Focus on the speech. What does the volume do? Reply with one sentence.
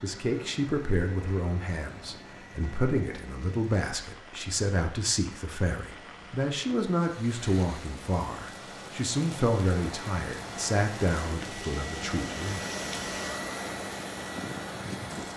The loudness of the speech stays about the same.